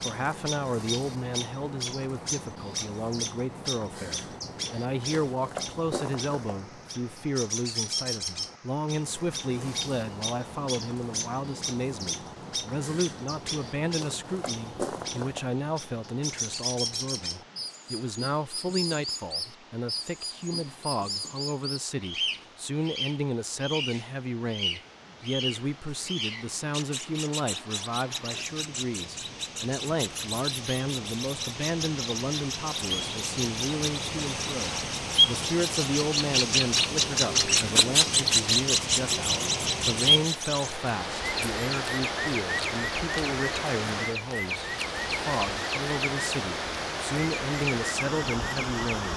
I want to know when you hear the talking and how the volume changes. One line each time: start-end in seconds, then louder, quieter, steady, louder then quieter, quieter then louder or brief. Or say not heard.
0.0-49.1 steady.